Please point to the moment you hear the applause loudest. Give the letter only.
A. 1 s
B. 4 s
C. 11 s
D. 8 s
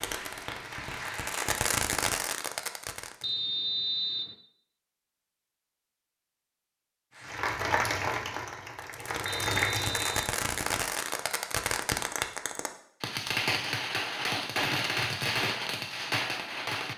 D.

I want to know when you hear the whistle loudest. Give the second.
4 s.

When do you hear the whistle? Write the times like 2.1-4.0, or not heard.
3.2-4.3, 9.2-10.3.